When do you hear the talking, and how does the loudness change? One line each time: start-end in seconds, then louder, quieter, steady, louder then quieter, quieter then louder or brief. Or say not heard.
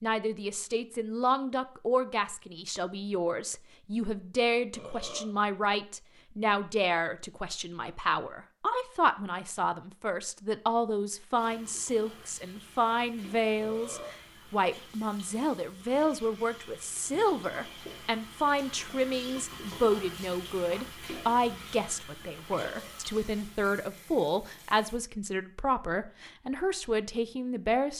0.0-27.9 steady.